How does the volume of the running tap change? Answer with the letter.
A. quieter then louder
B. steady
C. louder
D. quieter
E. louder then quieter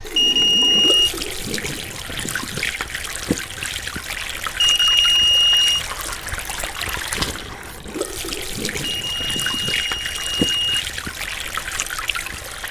B.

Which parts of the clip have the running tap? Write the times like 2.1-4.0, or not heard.
0.0-12.6.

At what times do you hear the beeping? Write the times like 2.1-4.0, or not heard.
0.1-1.1, 4.6-5.8, 8.9-10.7.